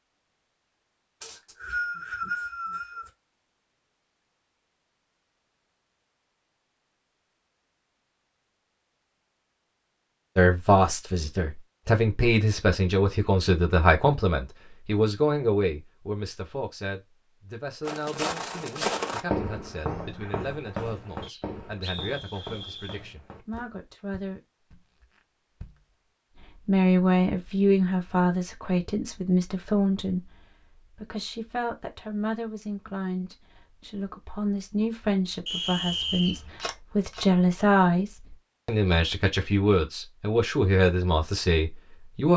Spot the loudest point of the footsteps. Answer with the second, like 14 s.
19 s.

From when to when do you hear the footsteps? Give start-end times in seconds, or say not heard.
17.9-25.9.